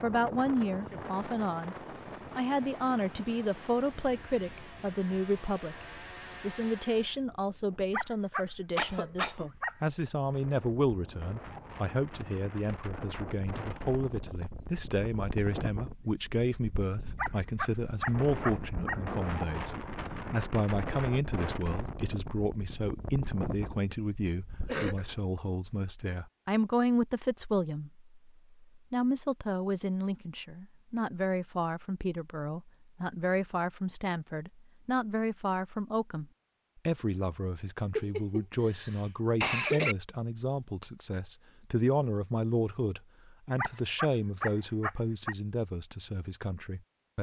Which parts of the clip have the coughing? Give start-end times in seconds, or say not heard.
8.8-9.5, 24.6-25.1, 38.0-40.0.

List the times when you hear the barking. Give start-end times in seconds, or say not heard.
7.9-9.8, 17.1-19.0, 43.5-45.4.